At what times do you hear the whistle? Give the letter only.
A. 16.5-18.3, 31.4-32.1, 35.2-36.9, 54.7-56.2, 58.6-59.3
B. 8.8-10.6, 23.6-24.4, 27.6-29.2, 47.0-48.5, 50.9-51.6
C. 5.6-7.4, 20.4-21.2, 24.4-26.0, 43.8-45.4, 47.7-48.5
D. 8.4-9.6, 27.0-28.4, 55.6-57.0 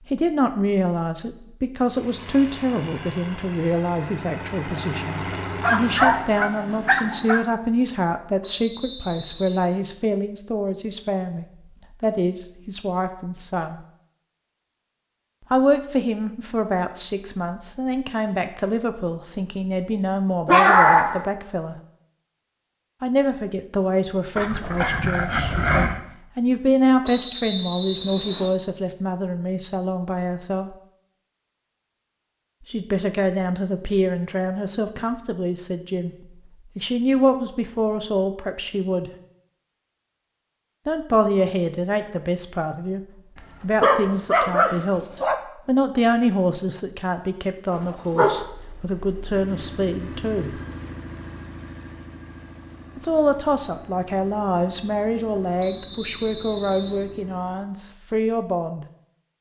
D.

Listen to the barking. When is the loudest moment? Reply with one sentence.
The loudest moment of the barking is at 21 seconds.